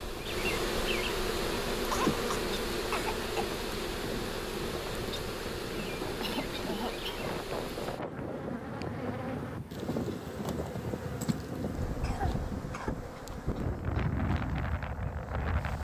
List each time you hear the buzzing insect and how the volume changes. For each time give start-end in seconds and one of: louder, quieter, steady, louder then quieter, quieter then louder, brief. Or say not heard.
0.0-15.8 quieter.